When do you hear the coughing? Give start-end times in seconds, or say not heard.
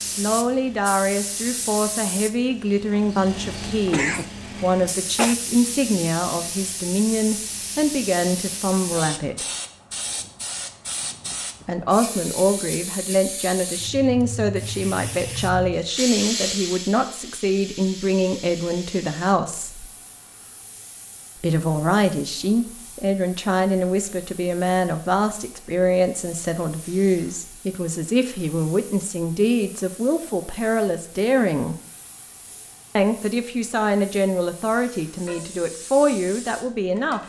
3.9-5.3.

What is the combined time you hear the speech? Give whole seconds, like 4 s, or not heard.
32 s.